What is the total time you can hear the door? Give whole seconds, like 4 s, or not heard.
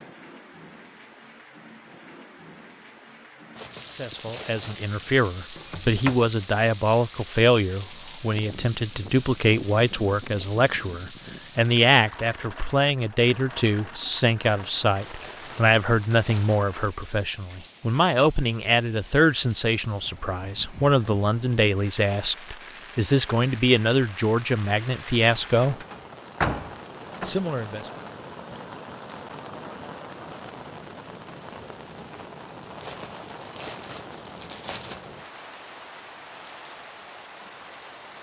3 s.